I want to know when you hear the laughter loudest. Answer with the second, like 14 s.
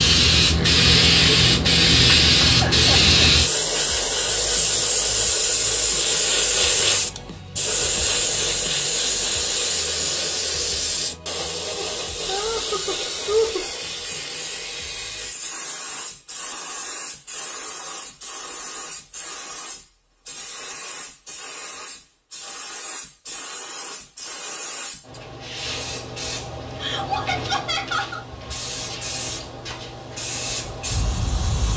13 s.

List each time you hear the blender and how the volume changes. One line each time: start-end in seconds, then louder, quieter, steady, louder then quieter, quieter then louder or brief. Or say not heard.
not heard.